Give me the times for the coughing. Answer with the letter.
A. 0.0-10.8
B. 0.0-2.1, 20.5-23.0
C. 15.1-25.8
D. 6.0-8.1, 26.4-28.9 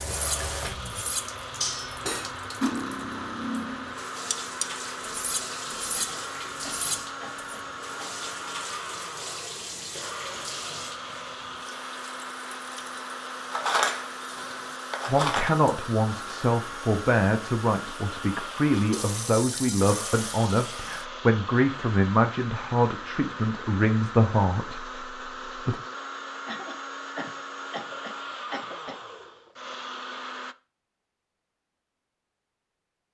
D.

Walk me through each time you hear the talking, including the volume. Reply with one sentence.
You can hear the talking from 15.1 to 25.8 s, at a steady volume.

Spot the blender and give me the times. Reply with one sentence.
The blender can be heard from 0.0 to 30.6 s.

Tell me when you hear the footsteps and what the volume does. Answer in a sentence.
You can't hear the footsteps here.